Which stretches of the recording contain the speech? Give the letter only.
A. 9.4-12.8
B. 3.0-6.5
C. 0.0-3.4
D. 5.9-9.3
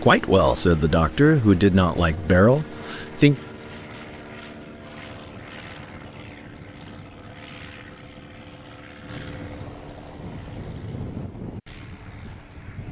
C.